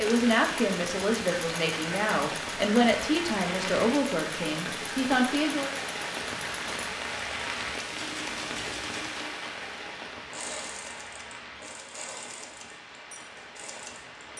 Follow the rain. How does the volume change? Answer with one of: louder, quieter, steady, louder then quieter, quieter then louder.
quieter.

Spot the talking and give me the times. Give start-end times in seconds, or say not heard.
0.0-5.7.